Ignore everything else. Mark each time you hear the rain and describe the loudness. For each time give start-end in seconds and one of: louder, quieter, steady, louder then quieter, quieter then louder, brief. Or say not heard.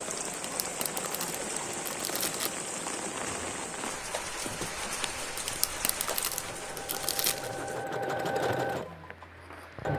0.0-9.9 quieter.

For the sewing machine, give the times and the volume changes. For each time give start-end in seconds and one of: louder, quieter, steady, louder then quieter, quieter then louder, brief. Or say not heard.
0.0-9.9 louder.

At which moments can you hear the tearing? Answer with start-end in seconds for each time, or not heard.
0.3-2.6, 5.3-7.5.